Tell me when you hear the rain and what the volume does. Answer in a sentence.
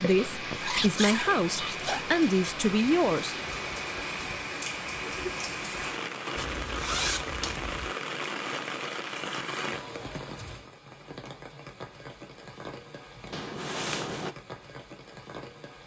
You can hear the rain from 0.0 to 15.8 s, getting quieter.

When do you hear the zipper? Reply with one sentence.
You can hear the zipper from 0.6 to 2.0 s, from 6.3 to 7.9 s and from 13.3 to 14.3 s.